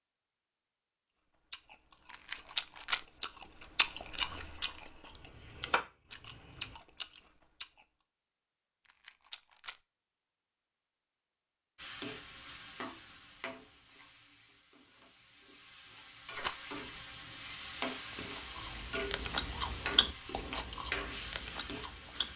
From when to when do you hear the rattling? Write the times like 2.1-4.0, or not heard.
2.1-3.0, 8.8-9.8, 16.3-16.8.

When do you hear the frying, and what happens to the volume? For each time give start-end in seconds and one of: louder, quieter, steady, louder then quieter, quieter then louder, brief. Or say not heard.
11.8-22.3 quieter then louder.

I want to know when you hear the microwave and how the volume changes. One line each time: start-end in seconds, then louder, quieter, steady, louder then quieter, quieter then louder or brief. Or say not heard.
not heard.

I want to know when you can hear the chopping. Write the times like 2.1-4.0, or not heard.
5.2-6.8.